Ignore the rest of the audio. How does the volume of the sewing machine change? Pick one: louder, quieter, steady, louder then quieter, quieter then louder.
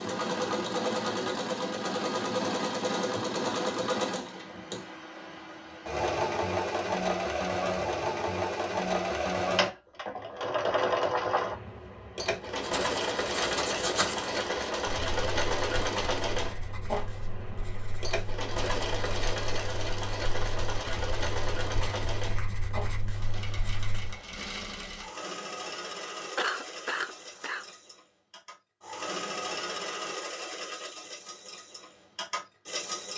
quieter.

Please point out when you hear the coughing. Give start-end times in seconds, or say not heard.
26.4-27.7.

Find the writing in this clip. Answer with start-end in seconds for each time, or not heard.
12.6-24.1.